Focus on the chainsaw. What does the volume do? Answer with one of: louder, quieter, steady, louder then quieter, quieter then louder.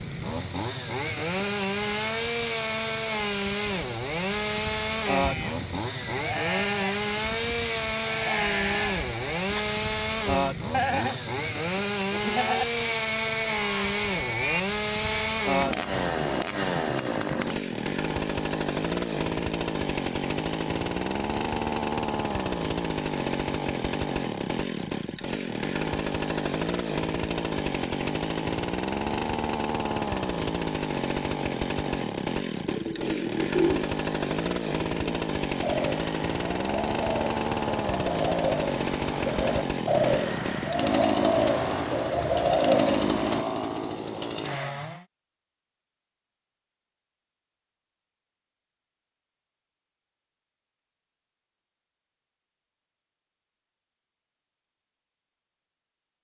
steady.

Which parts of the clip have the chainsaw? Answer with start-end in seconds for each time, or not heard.
0.0-45.0.